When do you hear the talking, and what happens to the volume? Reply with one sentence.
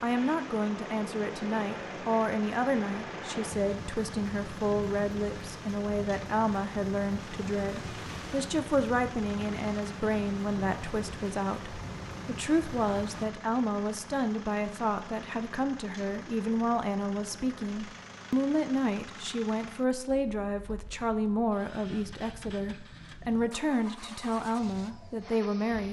The talking can be heard from 0.0 to 25.8 s, at a steady volume.